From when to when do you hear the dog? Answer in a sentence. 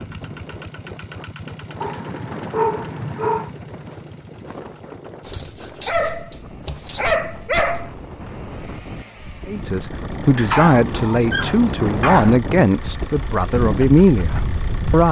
You can hear the dog from 1.8 to 3.5 s, from 5.2 to 7.9 s and from 10.3 to 12.4 s.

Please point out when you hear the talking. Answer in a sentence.
You can hear the talking from 9.4 to 15.0 s.